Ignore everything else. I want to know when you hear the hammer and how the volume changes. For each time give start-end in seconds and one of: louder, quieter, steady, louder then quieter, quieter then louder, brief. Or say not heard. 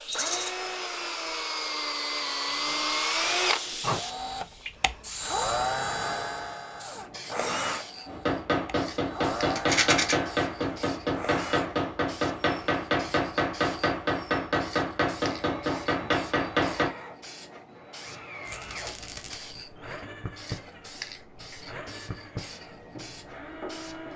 8.1-16.9 steady.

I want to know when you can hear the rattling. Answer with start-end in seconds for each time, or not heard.
0.1-0.5, 9.6-10.2, 18.4-19.4.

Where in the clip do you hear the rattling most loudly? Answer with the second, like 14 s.
10 s.